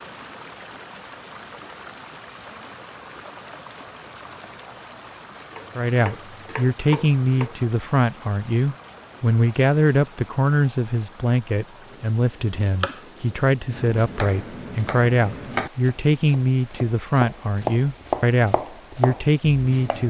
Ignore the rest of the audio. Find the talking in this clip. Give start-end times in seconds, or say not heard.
5.8-20.0.